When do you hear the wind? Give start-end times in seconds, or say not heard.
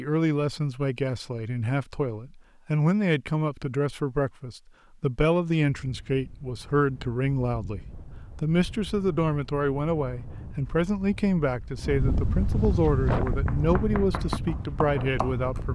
5.6-15.7.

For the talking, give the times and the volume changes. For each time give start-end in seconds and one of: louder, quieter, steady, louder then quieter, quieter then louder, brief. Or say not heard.
0.0-15.7 steady.